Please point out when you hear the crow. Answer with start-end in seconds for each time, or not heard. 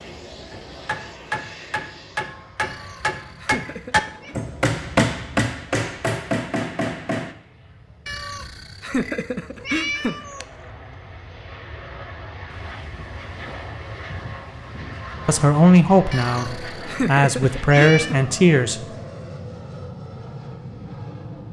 not heard.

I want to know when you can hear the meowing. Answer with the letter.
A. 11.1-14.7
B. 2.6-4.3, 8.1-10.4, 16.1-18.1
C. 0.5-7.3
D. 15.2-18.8
B.